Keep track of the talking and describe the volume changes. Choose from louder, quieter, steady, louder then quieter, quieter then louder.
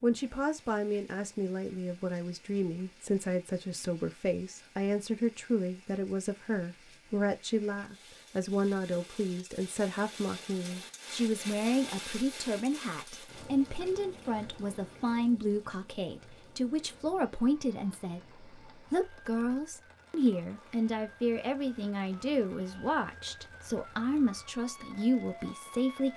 steady.